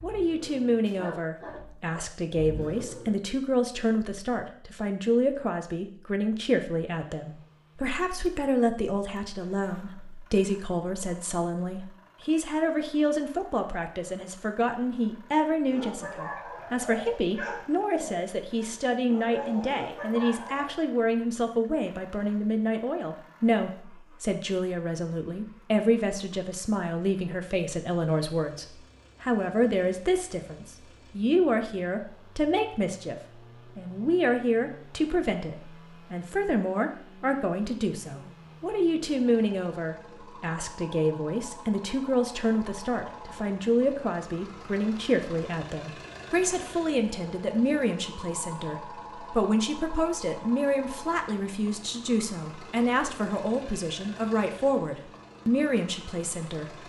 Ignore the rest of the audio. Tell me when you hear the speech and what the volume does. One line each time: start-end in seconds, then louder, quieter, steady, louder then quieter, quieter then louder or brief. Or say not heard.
0.0-56.8 steady.